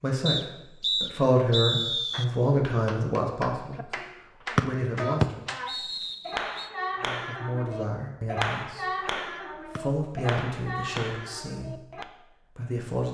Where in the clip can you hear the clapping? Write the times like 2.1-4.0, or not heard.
2.1-12.1.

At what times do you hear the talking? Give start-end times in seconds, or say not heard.
0.0-5.5, 7.0-9.1, 9.7-13.0.